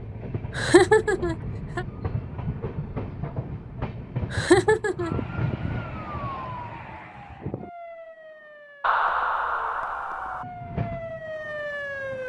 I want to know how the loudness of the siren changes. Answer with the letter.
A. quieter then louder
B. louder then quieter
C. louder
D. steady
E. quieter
A.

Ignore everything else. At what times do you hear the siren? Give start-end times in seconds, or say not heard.
5.0-12.2.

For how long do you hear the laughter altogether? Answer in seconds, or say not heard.
4 s.